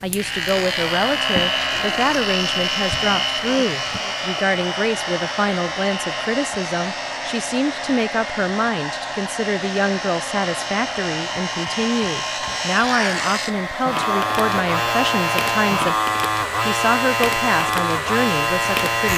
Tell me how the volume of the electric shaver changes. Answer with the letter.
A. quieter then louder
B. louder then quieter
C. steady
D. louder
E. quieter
A.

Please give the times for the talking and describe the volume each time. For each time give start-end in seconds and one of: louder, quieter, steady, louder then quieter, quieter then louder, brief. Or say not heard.
0.0-15.9 steady
16.6-19.1 brief.